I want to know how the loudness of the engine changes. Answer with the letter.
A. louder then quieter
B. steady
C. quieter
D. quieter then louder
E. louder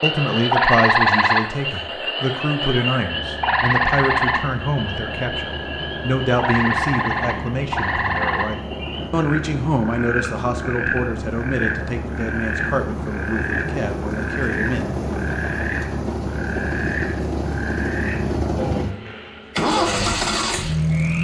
E.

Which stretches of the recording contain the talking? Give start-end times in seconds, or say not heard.
0.0-14.9.